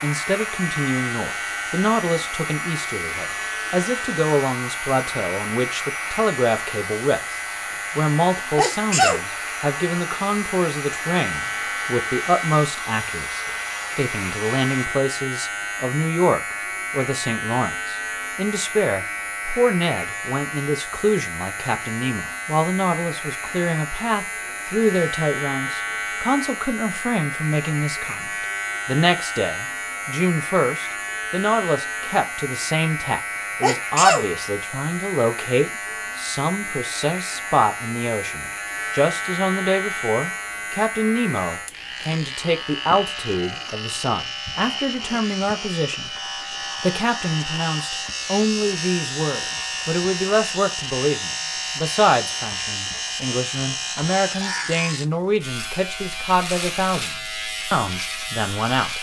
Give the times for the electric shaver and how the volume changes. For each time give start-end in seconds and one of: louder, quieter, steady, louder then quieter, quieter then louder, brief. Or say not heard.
0.0-58.9 steady.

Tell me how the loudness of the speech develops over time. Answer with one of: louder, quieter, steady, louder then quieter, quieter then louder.
steady.